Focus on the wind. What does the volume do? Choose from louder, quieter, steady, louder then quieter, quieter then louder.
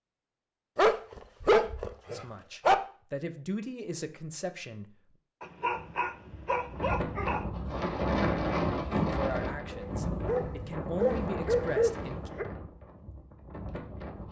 louder then quieter.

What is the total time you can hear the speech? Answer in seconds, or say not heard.
6 s.